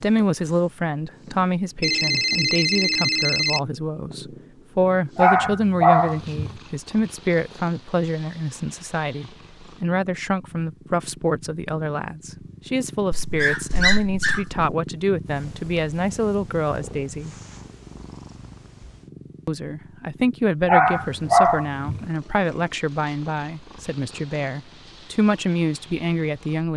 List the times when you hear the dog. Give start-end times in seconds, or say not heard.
5.2-6.5, 13.1-14.7, 20.6-22.1.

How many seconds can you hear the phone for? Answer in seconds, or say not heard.
2 s.